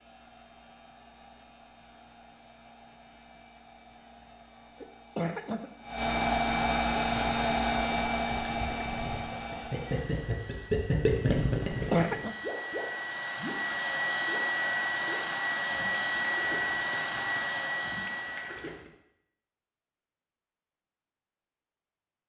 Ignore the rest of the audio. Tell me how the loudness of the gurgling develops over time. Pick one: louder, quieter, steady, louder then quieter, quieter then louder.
louder then quieter.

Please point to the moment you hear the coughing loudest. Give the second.
12 s.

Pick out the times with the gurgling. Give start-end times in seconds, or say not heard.
6.9-18.9.